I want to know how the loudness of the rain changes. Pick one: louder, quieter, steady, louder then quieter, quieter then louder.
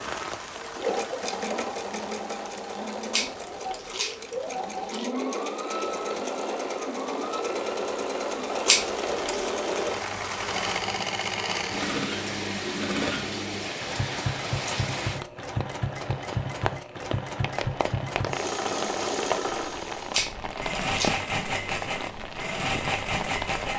louder.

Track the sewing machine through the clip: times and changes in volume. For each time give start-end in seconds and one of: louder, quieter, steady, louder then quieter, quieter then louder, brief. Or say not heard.
0.0-23.7 steady.